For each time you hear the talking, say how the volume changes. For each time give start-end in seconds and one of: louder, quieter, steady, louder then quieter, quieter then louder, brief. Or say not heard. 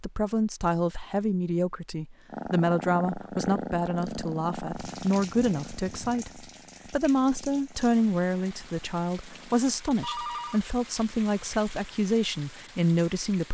0.0-13.4 steady.